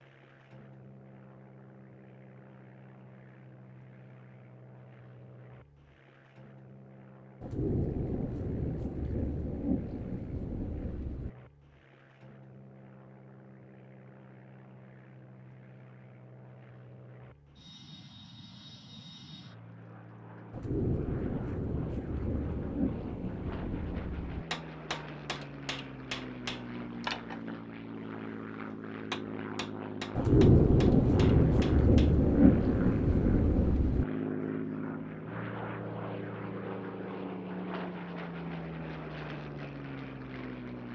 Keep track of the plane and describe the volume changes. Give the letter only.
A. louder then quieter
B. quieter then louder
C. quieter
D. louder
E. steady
D.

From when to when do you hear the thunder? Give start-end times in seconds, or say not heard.
7.4-11.3, 20.5-24.4, 30.1-34.0.